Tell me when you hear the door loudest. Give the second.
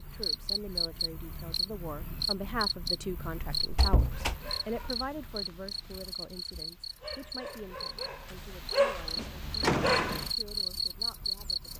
10 s.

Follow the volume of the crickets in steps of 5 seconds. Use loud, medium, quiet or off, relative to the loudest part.
loud, medium, loud.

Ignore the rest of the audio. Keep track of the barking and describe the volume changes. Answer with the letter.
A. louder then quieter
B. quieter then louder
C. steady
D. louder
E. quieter
B.